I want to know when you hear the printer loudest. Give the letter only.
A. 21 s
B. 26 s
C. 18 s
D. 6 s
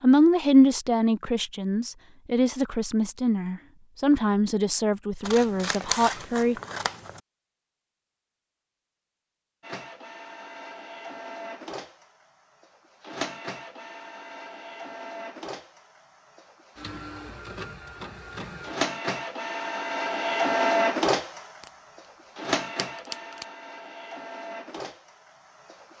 A.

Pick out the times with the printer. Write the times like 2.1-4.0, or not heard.
9.6-25.9.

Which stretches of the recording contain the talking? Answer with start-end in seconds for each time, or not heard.
0.0-6.5.